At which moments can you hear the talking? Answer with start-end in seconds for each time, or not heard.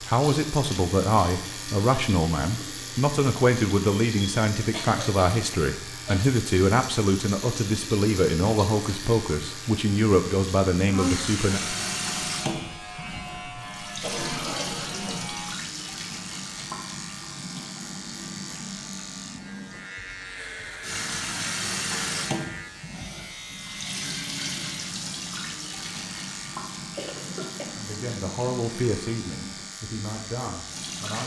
0.0-11.6, 27.8-31.2.